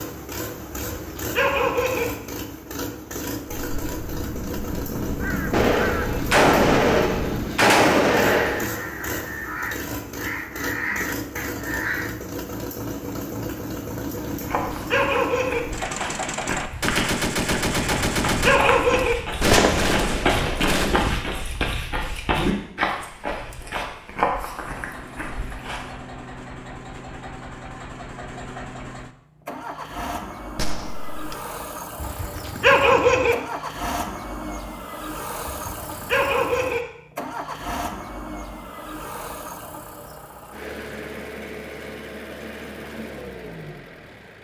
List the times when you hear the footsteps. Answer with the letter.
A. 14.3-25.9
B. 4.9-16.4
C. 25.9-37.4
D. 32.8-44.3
A.